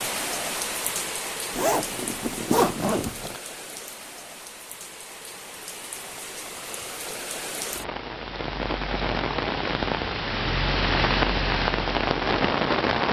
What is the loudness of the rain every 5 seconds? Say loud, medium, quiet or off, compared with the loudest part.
medium, medium, loud.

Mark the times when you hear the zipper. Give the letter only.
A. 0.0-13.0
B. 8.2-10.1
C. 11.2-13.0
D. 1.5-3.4
D.